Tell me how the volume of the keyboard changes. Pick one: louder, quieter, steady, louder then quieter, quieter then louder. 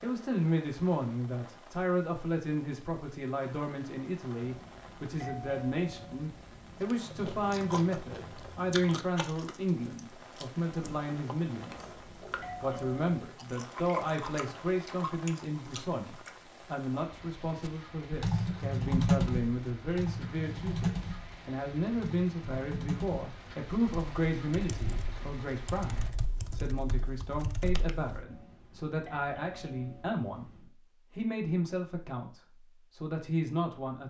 quieter.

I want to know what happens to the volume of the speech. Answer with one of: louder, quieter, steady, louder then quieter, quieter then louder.
steady.